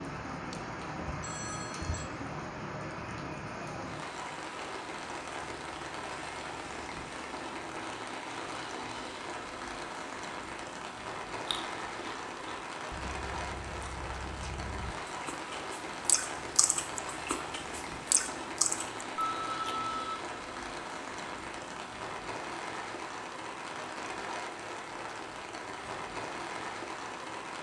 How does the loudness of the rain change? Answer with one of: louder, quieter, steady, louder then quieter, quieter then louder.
steady.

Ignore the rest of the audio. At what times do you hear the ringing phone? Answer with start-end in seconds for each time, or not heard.
0.5-2.0, 19.1-20.2.